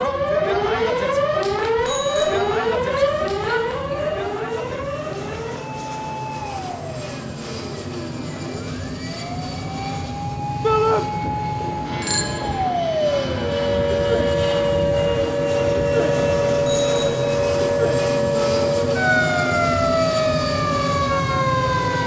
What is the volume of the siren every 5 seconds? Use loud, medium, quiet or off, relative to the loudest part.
loud, quiet, loud, loud, loud.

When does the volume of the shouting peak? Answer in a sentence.
The loudest moment of the shouting is at 11 seconds.